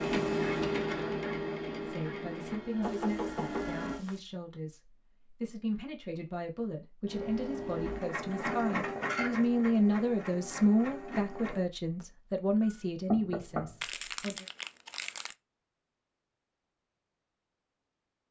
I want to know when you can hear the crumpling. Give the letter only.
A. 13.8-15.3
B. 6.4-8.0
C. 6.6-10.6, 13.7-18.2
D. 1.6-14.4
A.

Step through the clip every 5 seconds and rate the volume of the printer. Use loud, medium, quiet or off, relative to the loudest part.
loud, loud, medium, off.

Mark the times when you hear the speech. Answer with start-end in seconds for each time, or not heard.
1.6-14.4.